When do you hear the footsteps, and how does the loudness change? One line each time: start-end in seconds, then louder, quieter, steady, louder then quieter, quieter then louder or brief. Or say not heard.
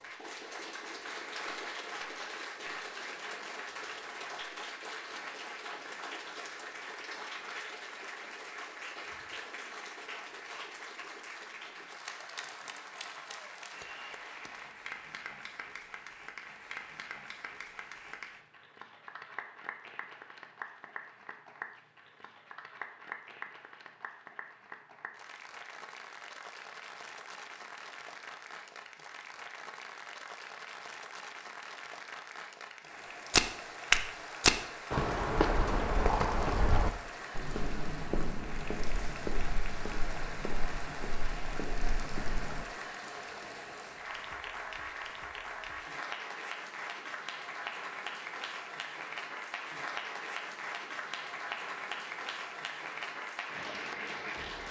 33.3-42.6 quieter.